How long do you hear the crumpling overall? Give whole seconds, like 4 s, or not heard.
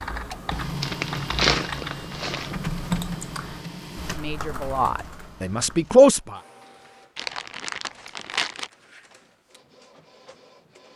3 s.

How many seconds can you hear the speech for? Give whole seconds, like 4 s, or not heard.
2 s.